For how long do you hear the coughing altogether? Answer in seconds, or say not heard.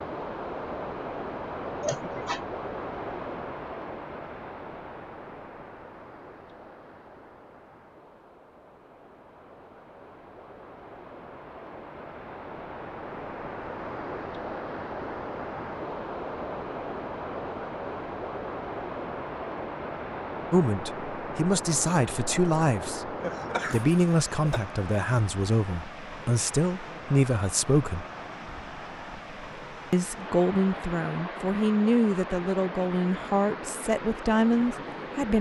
2 s.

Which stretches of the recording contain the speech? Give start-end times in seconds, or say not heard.
20.5-23.1, 23.7-28.1, 29.9-35.3.